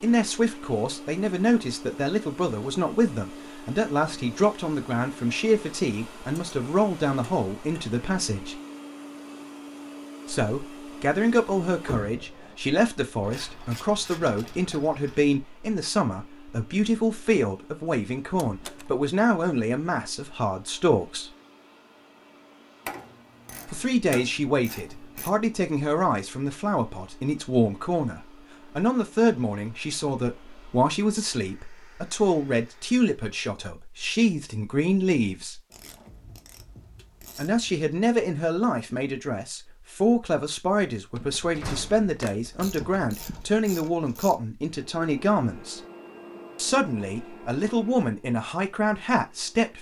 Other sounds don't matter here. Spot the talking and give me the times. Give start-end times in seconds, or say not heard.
0.0-8.6, 10.2-21.3, 23.6-35.6, 37.4-45.8, 46.5-49.7.